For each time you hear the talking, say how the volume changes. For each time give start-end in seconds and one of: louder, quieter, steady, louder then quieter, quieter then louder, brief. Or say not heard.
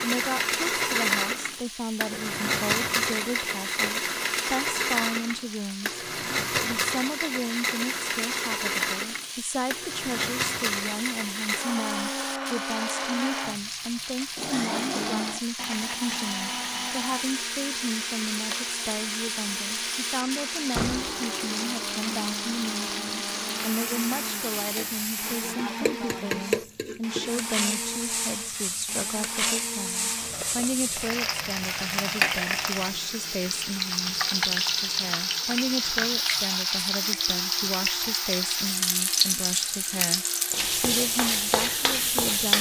0.0-42.5 steady.